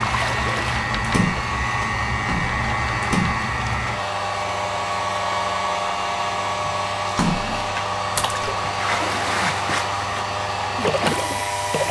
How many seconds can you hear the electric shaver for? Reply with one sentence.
You can hear the electric shaver for 12 seconds altogether.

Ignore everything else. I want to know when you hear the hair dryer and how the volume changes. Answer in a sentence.
The hair dryer can be heard from 0.0 to 11.8 s, at a steady volume.